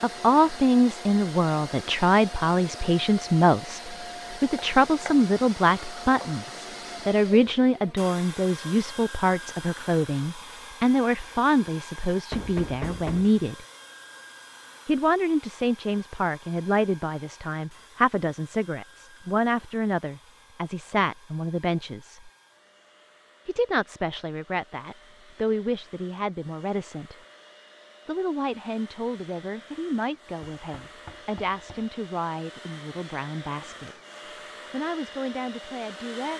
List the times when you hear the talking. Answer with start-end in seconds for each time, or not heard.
0.0-13.7, 14.8-22.3, 23.4-27.1, 28.1-34.0, 34.7-36.3.